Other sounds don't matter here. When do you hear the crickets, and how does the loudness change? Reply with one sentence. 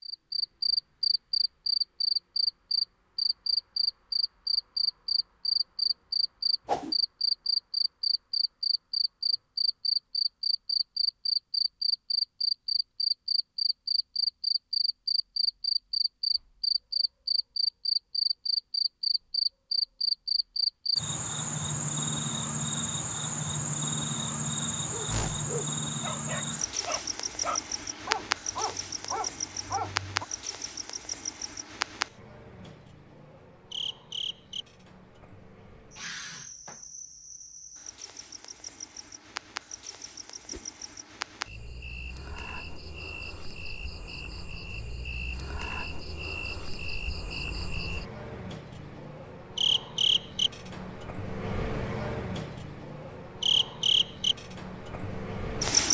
The crickets can be heard from 0.0 to 55.8 s, getting quieter then louder.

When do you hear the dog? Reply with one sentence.
You can hear the dog from 24.9 to 30.2 s.